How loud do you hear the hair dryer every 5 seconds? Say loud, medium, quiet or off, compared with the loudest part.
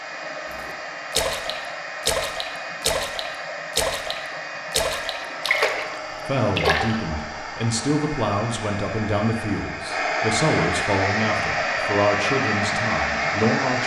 medium, medium, loud.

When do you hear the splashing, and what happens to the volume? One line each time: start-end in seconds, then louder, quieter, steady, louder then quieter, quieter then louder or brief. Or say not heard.
0.5-6.0 steady
6.5-7.0 brief.